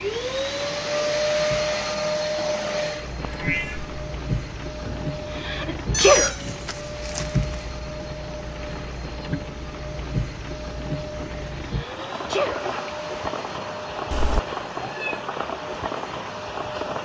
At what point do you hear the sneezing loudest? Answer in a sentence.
The loudest moment of the sneezing is at 6 seconds.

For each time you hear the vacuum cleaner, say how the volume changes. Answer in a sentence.
The vacuum cleaner can be heard from 0.0 to 17.0 s, getting quieter.